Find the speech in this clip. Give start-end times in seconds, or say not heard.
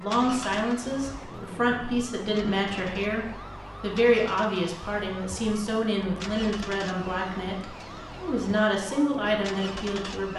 0.0-10.3.